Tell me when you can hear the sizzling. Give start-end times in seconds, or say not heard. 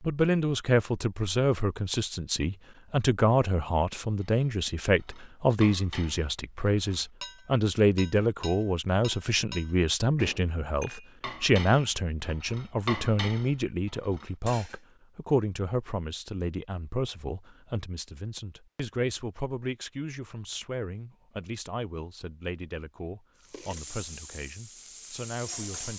23.4-25.9.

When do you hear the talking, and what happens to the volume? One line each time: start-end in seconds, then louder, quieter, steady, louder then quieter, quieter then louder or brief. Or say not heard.
0.0-25.9 quieter.